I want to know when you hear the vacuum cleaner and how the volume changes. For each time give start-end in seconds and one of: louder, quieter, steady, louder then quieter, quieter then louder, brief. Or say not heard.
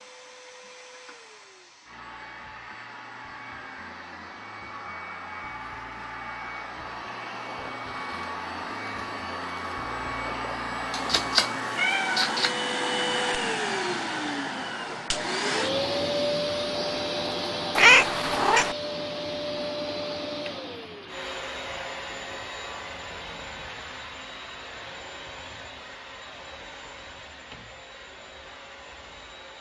0.0-29.5 louder then quieter.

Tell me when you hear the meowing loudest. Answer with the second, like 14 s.
18 s.